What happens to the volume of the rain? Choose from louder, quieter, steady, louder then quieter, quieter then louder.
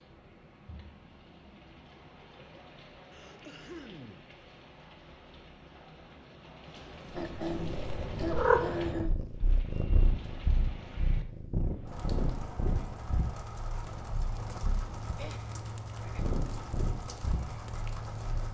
louder.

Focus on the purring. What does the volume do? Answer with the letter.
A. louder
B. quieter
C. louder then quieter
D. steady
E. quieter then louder
E.